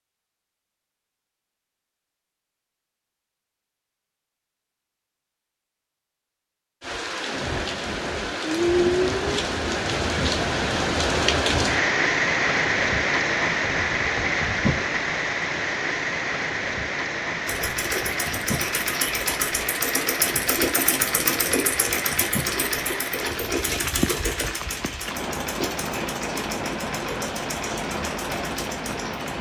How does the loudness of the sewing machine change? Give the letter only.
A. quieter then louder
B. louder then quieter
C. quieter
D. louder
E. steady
C.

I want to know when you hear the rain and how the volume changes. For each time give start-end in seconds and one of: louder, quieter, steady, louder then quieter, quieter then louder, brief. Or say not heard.
6.8-29.3 quieter.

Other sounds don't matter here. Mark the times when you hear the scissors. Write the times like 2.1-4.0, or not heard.
not heard.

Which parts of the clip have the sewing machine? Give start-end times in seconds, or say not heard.
17.4-29.3.